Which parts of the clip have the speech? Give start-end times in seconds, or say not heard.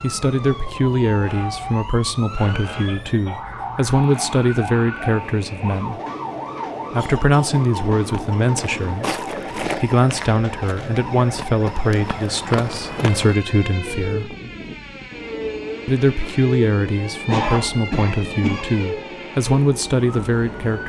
0.0-6.0, 6.9-14.3, 15.8-20.8.